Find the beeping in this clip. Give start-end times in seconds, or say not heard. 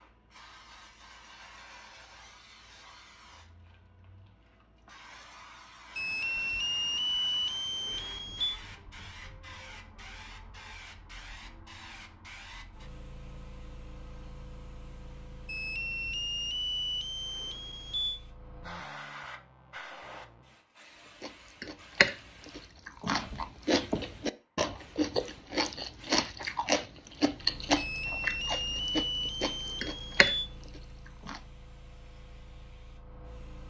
6.0-8.6, 15.4-18.2, 27.8-30.5.